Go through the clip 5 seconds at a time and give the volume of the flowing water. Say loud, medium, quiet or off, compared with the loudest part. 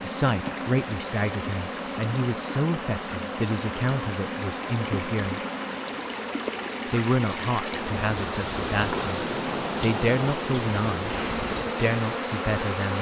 medium, loud, loud.